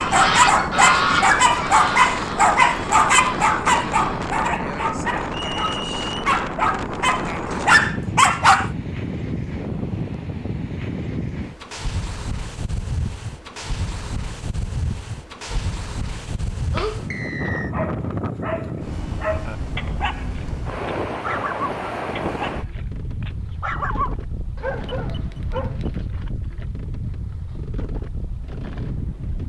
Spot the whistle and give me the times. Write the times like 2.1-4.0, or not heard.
5.3-6.2, 17.1-17.8.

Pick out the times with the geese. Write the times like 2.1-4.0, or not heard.
0.0-4.3.